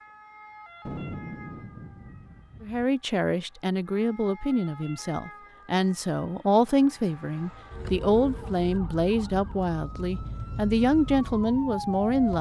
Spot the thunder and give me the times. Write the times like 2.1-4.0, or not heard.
0.8-2.9.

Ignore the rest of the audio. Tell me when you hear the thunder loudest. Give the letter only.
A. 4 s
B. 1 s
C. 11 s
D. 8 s
B.